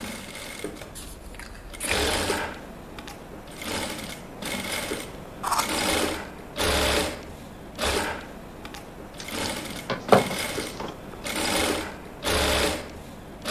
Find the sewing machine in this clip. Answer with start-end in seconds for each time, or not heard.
0.0-13.4.